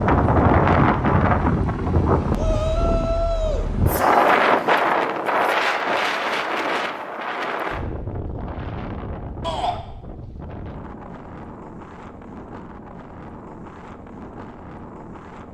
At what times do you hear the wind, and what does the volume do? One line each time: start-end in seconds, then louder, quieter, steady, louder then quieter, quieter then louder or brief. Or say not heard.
0.0-15.4 quieter.